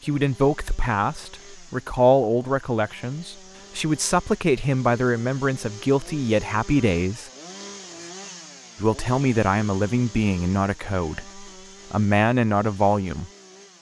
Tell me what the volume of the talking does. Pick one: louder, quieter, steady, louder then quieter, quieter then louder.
steady.